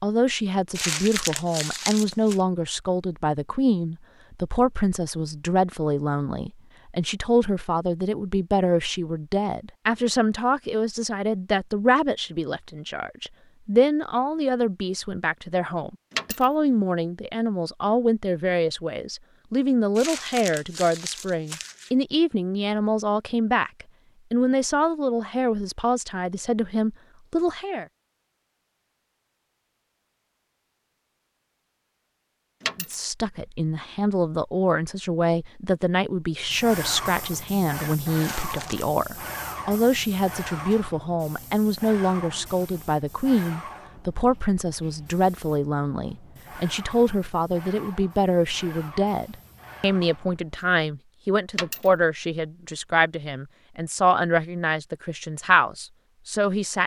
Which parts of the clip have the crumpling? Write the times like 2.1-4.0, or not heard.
0.7-2.4, 19.9-21.9, 38.1-39.0.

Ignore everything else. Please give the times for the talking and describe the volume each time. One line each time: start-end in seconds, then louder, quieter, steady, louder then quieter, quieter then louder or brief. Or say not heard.
0.0-27.9 steady
32.8-56.8 steady.